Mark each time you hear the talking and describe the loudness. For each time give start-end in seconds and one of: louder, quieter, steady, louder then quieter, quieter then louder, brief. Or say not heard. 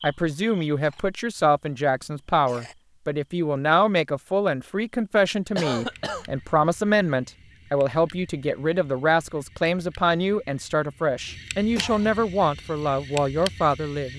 0.0-14.1 steady.